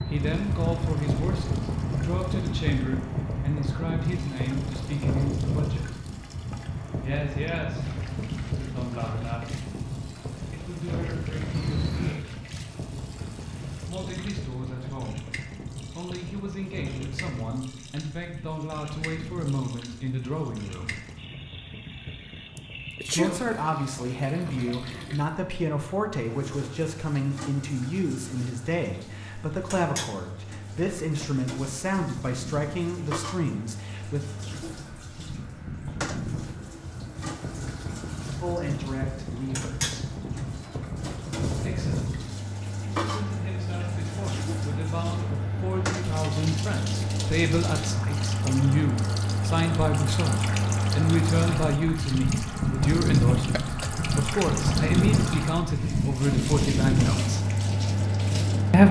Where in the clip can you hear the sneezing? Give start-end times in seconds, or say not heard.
11.5-12.2, 22.6-23.4, 53.4-53.9.